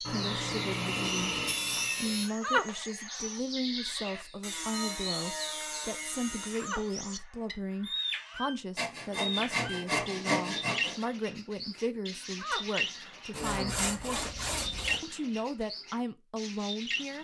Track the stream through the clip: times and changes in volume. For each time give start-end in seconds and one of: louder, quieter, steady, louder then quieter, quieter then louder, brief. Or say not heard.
not heard.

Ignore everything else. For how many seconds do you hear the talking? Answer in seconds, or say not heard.
16 s.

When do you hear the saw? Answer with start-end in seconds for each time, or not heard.
0.1-2.3, 4.4-6.7, 8.8-11.1, 13.3-15.0.